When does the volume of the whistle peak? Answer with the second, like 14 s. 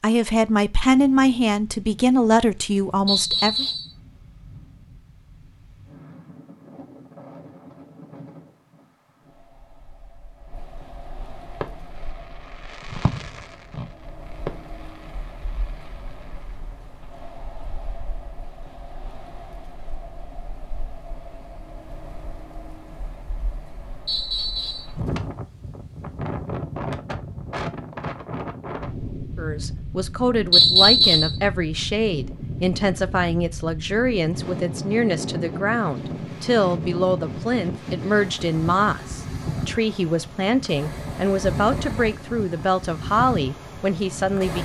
31 s.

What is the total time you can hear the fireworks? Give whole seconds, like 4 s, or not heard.
5 s.